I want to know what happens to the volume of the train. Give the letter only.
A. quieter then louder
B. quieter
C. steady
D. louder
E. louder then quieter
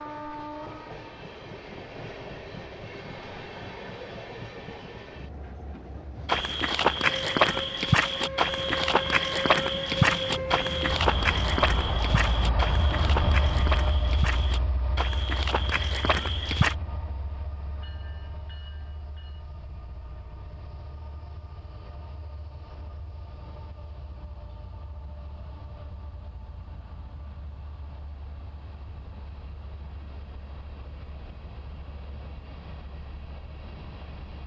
E.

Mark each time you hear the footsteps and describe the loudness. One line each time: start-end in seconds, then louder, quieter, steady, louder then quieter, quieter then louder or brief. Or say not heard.
6.2-16.8 quieter.